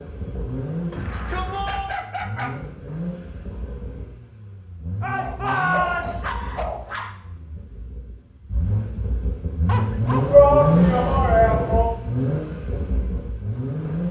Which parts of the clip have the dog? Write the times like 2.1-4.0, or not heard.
1.1-2.5, 5.2-7.1, 9.7-11.2.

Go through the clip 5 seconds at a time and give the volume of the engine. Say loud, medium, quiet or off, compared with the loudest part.
medium, medium, loud.